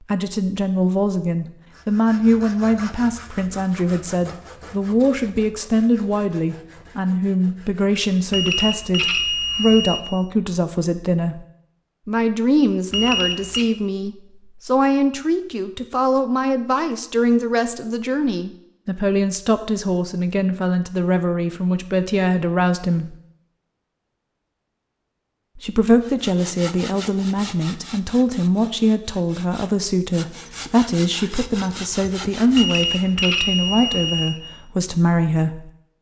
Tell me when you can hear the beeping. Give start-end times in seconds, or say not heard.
8.3-10.1, 12.9-13.7, 32.5-34.5.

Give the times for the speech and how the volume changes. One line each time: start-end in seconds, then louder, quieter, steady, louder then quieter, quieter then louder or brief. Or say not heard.
0.1-11.4 steady
12.1-23.1 steady
25.6-35.7 steady.